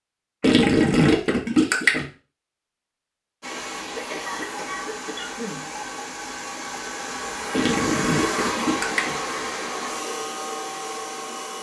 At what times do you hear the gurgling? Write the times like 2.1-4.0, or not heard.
0.4-2.0, 7.5-9.2.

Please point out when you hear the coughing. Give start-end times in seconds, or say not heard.
4.0-5.7.